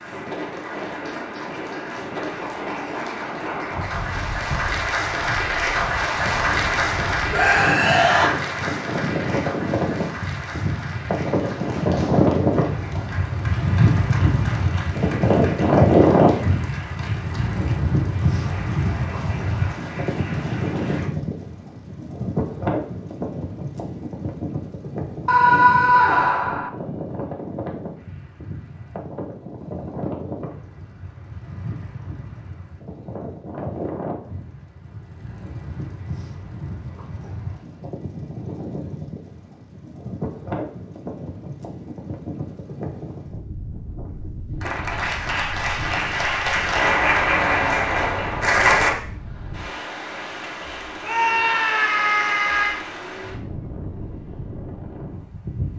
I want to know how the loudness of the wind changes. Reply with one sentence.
The loudness of the wind goes up, then down.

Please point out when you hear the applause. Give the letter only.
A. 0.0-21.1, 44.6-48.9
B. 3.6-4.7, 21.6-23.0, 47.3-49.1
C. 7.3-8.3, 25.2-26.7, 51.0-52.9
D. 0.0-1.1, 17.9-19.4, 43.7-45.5
A.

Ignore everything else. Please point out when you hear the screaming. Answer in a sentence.
The screaming can be heard from 7.3 to 8.3 s, from 25.2 to 26.7 s and from 51.0 to 52.9 s.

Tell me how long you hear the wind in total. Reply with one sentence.
You can hear the wind for 56 seconds altogether.